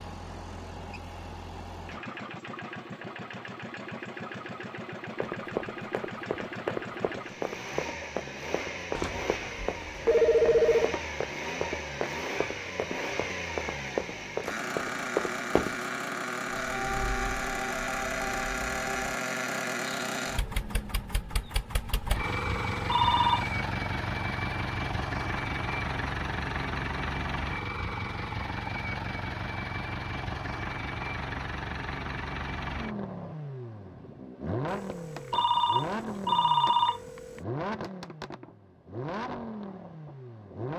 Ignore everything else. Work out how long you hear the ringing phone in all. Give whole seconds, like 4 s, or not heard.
6 s.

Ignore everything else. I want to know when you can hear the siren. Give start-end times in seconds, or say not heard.
16.4-19.2.